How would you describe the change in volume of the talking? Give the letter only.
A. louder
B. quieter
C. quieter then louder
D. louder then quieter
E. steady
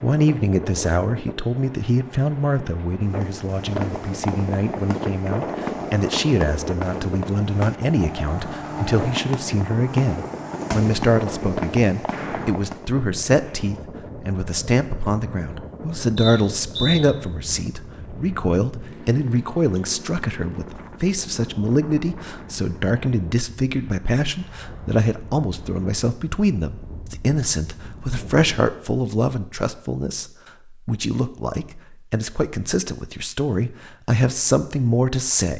E.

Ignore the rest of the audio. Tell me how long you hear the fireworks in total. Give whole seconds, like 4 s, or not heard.
10 s.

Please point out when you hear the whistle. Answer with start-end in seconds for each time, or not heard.
16.1-17.0.